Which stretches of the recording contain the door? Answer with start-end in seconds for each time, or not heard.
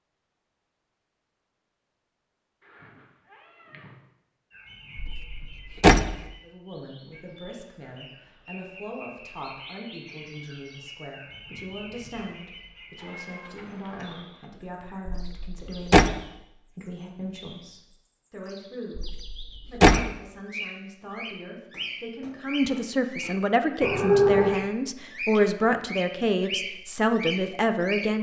5.0-6.2, 15.1-16.1, 18.9-20.1.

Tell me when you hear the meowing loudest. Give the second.
24 s.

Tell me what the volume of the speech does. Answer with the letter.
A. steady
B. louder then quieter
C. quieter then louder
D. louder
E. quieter
D.